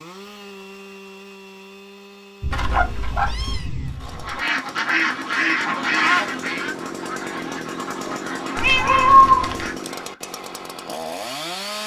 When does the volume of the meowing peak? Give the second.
9 s.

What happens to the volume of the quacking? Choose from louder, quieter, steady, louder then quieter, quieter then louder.
quieter.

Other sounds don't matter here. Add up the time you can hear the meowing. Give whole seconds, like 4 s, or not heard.
2 s.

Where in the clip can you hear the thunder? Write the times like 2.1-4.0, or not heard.
2.4-4.4.